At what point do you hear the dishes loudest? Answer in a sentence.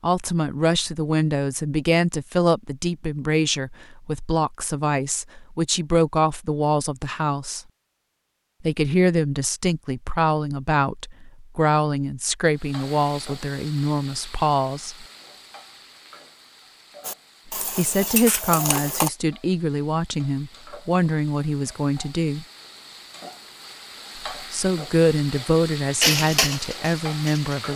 The loudest moment of the dishes is at 26 seconds.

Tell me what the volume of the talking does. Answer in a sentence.
The loudness of the talking stays about the same.